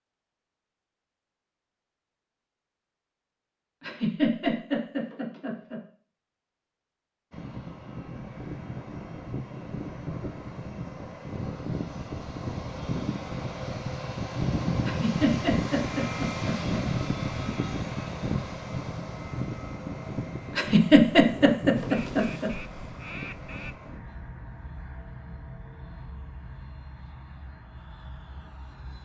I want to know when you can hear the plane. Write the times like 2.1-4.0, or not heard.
7.3-29.0.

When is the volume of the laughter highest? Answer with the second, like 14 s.
21 s.